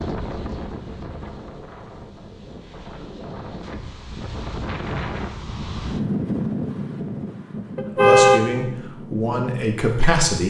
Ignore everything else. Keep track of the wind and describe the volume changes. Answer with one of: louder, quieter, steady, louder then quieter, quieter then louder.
louder then quieter.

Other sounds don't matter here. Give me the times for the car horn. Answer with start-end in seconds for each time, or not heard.
7.8-8.4.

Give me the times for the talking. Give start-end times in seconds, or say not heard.
8.0-10.4.